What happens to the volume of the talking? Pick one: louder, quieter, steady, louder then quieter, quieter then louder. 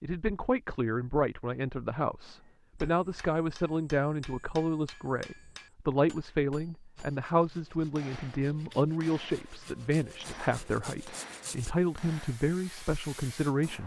steady.